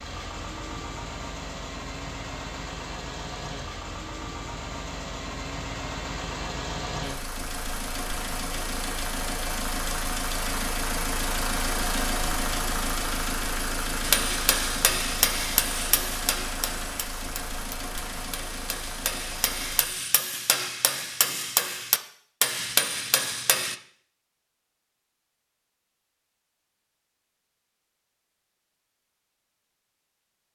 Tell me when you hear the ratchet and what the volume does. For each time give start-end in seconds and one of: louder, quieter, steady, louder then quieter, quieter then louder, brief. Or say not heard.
not heard.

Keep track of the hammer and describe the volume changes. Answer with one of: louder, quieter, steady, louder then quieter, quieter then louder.
quieter then louder.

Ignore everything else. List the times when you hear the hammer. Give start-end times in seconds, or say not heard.
14.0-23.8.